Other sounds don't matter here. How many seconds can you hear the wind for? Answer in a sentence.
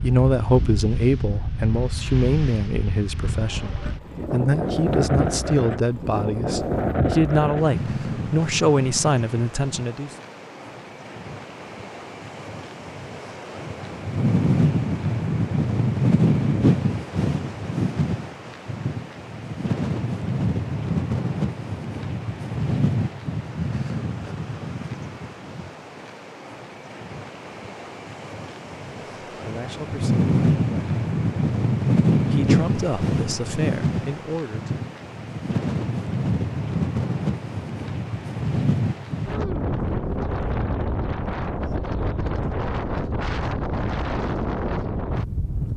The wind can be heard for 46 seconds in total.